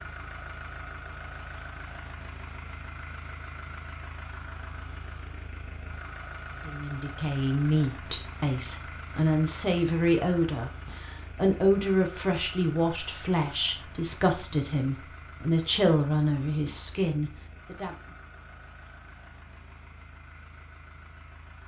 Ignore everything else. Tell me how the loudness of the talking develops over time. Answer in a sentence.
The volume of the talking stays about the same.